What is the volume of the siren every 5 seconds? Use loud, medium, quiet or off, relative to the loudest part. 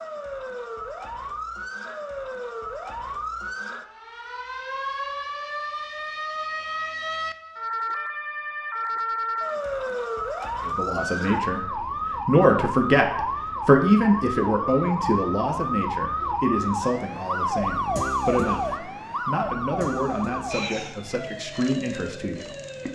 medium, loud, loud, loud, medium.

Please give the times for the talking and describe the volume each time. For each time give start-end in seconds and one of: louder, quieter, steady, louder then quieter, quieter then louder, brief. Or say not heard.
10.6-22.9 quieter.